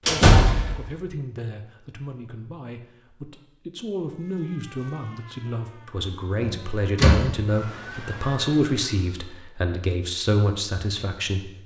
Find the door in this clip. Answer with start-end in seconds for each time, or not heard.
0.1-0.8, 6.4-7.3.